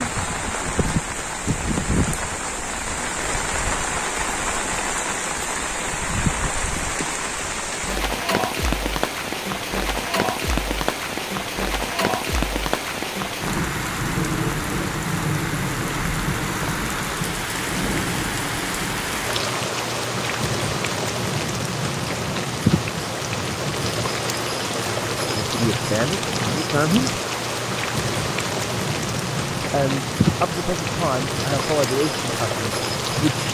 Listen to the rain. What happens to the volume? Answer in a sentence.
The volume of the rain stays about the same.